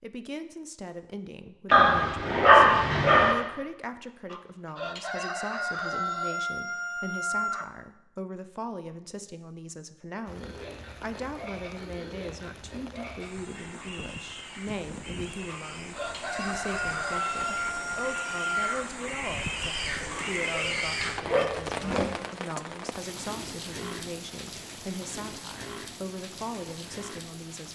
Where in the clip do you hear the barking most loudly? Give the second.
3 s.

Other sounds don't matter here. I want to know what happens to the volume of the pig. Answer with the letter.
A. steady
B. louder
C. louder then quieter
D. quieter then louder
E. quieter
B.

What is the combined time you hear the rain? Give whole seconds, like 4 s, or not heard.
17 s.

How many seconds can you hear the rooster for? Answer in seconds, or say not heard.
7 s.